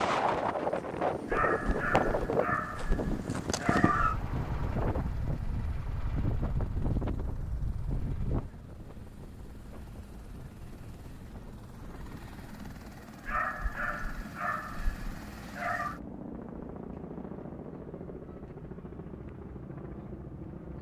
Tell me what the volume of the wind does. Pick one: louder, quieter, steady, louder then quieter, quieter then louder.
quieter.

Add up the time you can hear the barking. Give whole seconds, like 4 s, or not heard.
6 s.